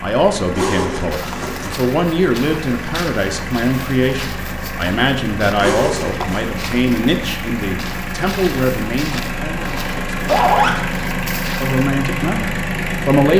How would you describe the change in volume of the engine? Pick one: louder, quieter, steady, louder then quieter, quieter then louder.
louder.